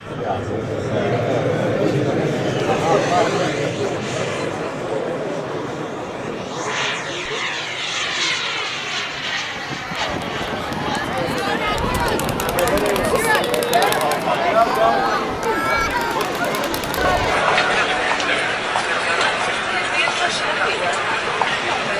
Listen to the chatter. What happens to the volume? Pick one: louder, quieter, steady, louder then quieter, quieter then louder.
quieter then louder.